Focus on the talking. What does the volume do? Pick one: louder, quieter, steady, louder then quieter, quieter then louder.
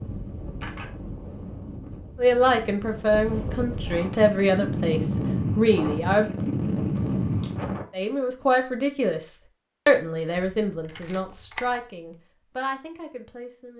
quieter.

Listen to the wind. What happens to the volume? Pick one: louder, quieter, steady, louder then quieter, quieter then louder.
louder.